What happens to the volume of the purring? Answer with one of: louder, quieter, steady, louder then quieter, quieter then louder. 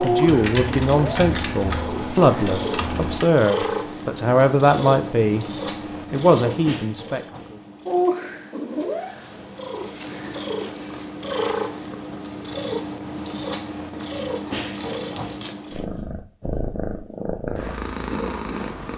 steady.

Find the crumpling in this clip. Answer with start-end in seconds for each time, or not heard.
13.9-15.6.